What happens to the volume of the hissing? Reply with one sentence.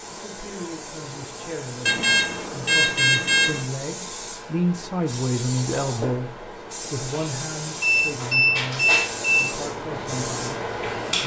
The volume of the hissing goes up.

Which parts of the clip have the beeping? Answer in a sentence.
You can hear the beeping from 1.9 to 3.6 s and from 7.8 to 9.6 s.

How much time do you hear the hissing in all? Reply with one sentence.
You can hear the hissing for 11 seconds altogether.